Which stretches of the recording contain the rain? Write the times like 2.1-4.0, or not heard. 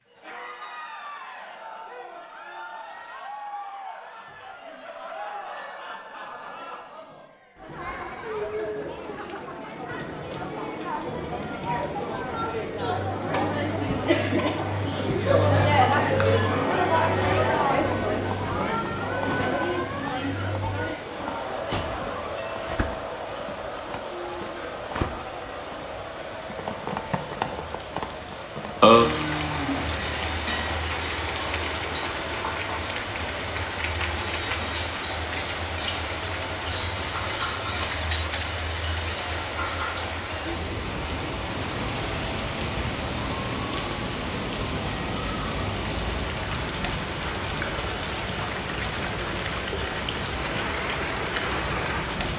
17.1-52.3.